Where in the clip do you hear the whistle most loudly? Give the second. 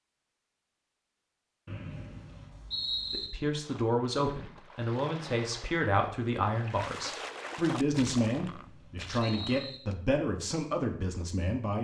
3 s.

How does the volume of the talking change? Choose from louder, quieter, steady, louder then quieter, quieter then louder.
steady.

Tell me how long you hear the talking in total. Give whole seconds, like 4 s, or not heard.
9 s.